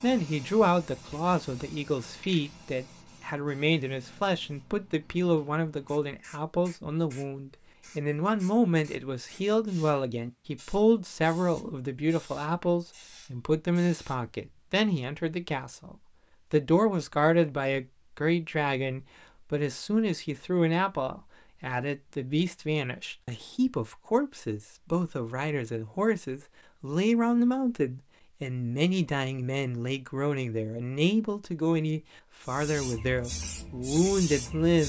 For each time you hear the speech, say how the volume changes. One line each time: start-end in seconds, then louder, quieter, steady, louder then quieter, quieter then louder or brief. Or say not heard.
0.0-34.8 steady.